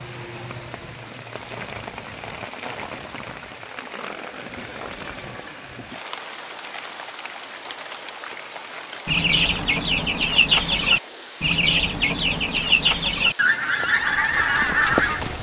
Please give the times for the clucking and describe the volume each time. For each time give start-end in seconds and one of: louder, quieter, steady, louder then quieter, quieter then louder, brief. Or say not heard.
9.1-15.2 steady.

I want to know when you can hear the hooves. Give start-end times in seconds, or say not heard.
13.7-15.3.